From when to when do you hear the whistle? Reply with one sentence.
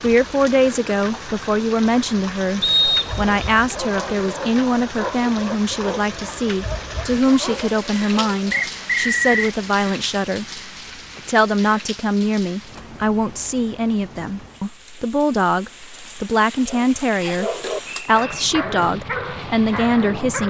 You can hear the whistle from 2.6 to 3.3 s, from 8.5 to 9.5 s and from 17.2 to 18.4 s.